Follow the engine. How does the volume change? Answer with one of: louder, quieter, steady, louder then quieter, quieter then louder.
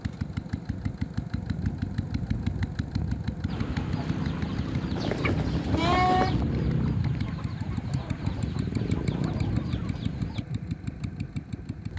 steady.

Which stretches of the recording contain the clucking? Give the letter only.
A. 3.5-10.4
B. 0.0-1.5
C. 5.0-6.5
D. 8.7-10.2
A.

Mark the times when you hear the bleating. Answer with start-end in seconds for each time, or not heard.
5.0-6.5.